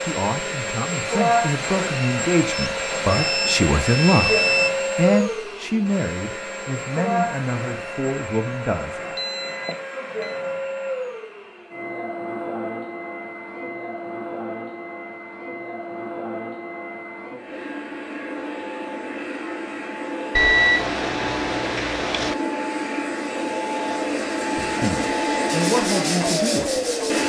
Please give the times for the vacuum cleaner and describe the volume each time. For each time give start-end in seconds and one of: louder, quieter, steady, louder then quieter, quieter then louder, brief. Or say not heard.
0.0-27.2 quieter then louder.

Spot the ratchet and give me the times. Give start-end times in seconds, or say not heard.
not heard.